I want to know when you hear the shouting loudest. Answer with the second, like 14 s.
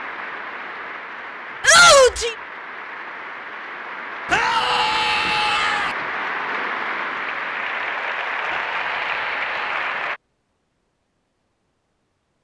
2 s.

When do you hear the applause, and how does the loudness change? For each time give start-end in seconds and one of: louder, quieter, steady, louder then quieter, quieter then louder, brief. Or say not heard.
0.0-10.2 louder.